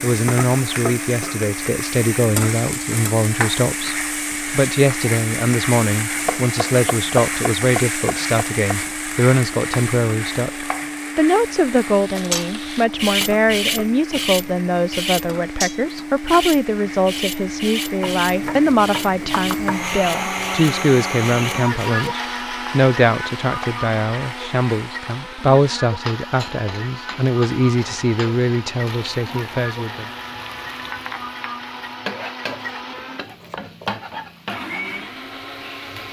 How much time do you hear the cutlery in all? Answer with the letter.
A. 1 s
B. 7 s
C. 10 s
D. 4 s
C.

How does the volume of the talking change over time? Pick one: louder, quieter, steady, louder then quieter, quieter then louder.
steady.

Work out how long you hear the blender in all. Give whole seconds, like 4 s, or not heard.
36 s.